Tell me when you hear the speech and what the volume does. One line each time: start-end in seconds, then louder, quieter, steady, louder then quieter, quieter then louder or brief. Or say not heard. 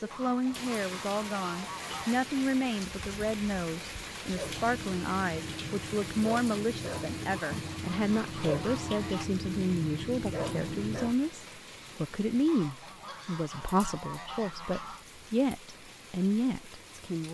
0.0-17.2 steady.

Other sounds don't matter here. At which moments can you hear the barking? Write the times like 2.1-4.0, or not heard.
4.2-11.2.